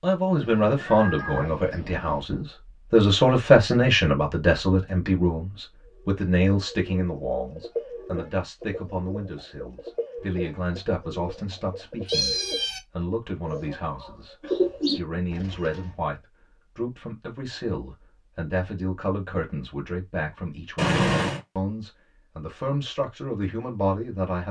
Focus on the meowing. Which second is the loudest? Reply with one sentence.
The volume of the meowing peaks at 21 seconds.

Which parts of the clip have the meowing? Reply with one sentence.
The meowing can be heard from 0.4 to 2.2 s, from 12.1 to 12.8 s and from 20.8 to 21.4 s.